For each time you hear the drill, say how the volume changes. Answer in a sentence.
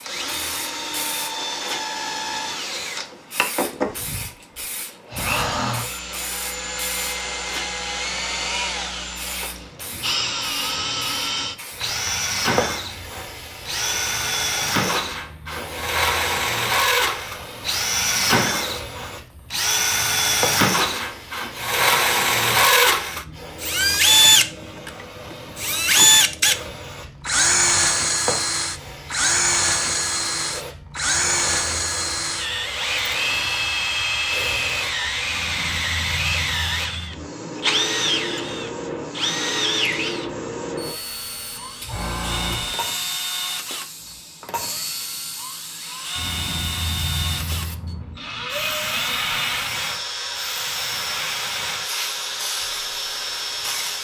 You can hear the drill from 0.0 to 53.9 s, getting louder then quieter.